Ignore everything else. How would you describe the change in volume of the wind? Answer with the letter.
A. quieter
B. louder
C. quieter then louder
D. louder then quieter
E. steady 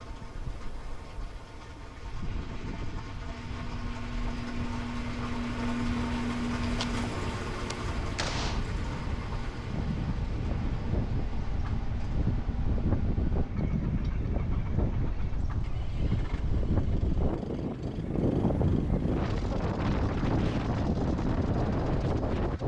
B.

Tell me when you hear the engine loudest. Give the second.
6 s.